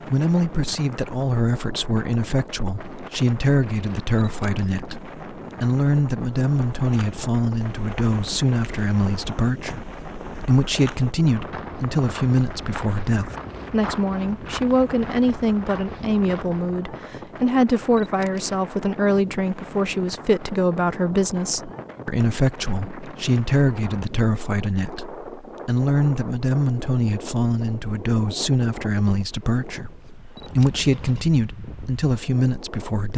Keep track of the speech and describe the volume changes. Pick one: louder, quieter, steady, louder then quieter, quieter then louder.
steady.